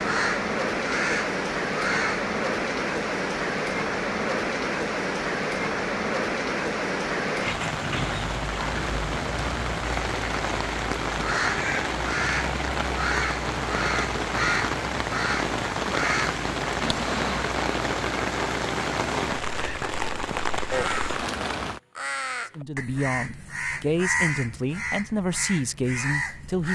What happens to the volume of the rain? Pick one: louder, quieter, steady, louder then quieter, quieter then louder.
steady.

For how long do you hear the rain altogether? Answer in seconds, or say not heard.
22 s.